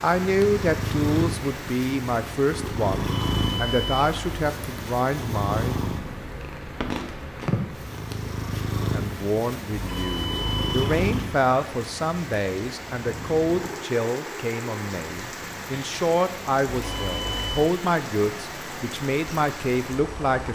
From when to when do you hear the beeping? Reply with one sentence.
You can hear the beeping from 2.9 to 4.5 s, from 9.7 to 10.9 s and from 16.6 to 17.8 s.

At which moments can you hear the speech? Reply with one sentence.
The speech can be heard from 0.0 to 5.8 s and from 8.9 to 20.5 s.